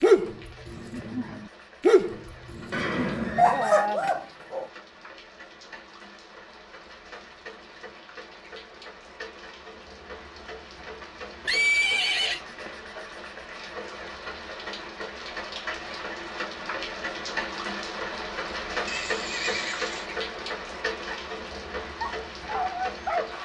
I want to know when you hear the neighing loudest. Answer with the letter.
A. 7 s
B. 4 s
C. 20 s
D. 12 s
D.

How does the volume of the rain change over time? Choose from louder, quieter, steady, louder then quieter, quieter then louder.
louder.